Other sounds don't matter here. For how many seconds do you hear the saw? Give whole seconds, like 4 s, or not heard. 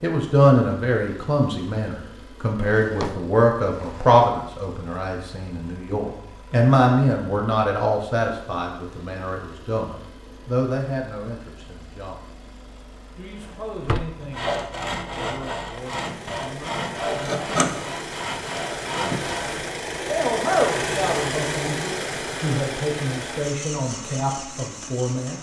5 s.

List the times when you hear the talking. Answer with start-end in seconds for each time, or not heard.
0.0-12.2, 13.2-17.6, 20.1-25.3.